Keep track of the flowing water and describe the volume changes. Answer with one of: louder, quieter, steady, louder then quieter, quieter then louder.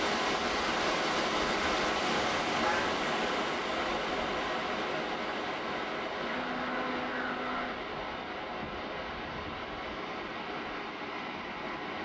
quieter.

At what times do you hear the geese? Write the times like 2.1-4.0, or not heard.
2.1-3.0, 6.2-7.8.